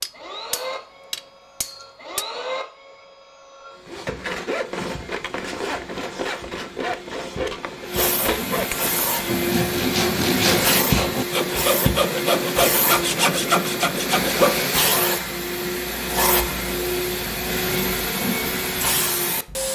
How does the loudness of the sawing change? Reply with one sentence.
The loudness of the sawing goes up.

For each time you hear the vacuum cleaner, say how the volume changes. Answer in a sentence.
You can hear the vacuum cleaner from 0.0 to 19.7 s, getting louder.